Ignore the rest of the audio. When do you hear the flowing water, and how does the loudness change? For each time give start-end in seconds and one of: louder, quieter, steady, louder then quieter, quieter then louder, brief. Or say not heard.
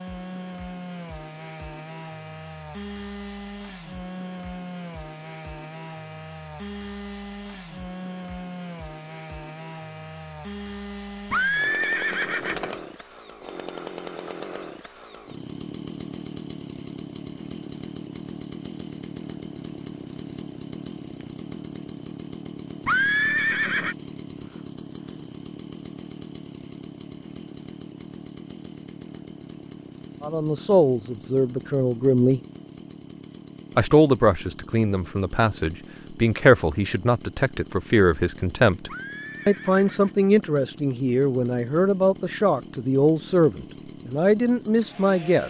not heard.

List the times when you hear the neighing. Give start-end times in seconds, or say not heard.
11.3-12.8, 22.9-23.9, 38.9-40.1.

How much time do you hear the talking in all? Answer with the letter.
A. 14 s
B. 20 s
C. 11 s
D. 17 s
A.